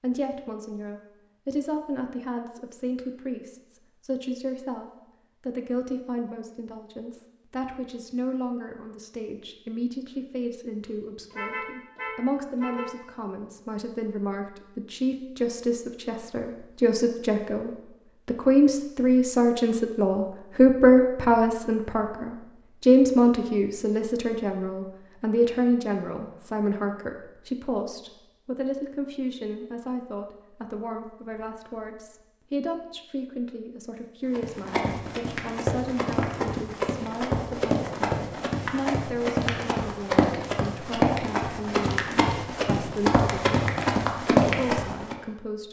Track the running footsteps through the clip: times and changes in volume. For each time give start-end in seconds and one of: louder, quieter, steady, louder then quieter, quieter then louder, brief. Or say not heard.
34.3-45.1 louder.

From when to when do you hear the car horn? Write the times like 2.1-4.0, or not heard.
11.3-12.9.